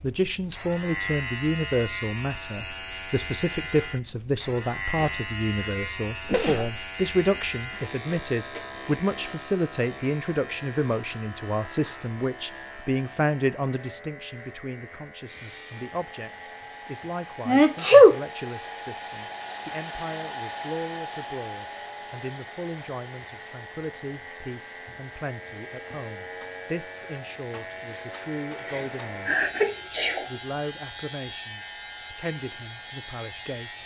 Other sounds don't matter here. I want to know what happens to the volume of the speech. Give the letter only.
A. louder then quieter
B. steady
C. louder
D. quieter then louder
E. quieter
E.